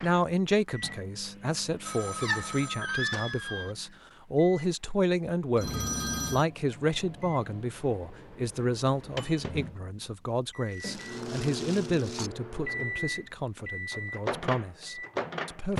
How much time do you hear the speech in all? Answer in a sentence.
The speech can be heard for 16 seconds in total.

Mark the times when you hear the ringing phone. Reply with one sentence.
You can hear the ringing phone from 1.9 to 3.7 s, from 5.5 to 6.5 s and from 10.8 to 11.2 s.